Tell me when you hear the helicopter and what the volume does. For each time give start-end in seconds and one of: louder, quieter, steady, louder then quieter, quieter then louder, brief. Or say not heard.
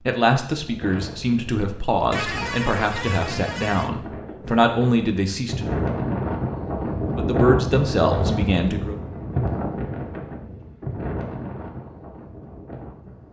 not heard.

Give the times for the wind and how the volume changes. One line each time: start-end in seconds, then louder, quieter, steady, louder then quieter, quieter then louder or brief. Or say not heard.
0.0-13.2 louder then quieter.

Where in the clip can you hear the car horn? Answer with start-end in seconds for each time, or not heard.
2.1-3.9.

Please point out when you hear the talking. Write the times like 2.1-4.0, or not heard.
0.1-5.7, 7.2-8.9.